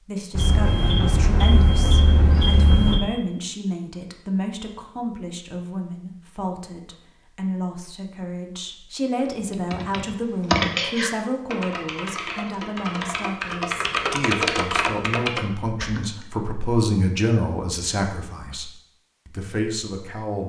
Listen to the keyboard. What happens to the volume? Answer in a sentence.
The volume of the keyboard goes down, then up.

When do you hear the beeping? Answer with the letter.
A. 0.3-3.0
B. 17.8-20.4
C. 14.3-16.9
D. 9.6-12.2
A.